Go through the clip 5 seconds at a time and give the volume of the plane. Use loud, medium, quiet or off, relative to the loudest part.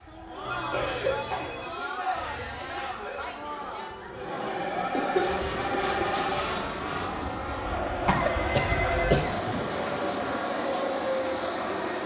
quiet, loud, loud.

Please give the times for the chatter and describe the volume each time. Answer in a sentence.
The chatter can be heard from 0.1 to 12.0 s, at a steady volume.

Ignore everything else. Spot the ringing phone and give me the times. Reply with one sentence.
You can hear the ringing phone from 0.5 to 1.9 s, from 4.5 to 6.4 s and from 8.0 to 9.8 s.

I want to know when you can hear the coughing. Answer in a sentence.
You can hear the coughing from 0.7 to 1.5 s, from 4.9 to 6.2 s and from 8.1 to 9.3 s.